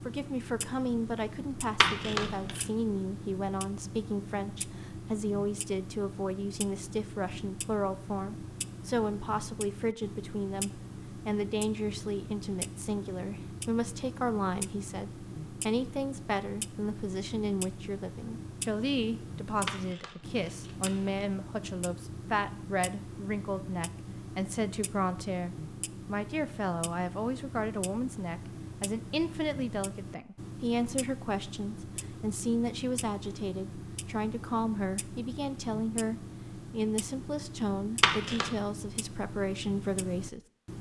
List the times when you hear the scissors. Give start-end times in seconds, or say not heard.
1.8-2.6, 19.6-21.2, 38.0-38.5.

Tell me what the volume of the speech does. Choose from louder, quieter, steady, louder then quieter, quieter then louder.
steady.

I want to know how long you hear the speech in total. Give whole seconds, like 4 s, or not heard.
41 s.